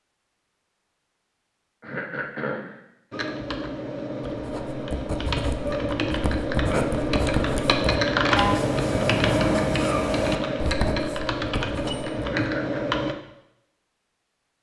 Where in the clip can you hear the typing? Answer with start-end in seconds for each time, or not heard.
3.1-13.2.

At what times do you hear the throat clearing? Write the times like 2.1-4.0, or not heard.
1.8-2.8, 12.4-12.8.